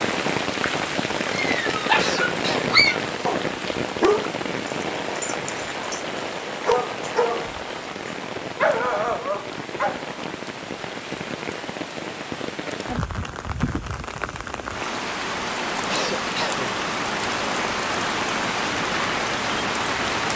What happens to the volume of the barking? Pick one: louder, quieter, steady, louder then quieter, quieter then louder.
quieter then louder.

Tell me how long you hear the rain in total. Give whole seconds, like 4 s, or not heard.
20 s.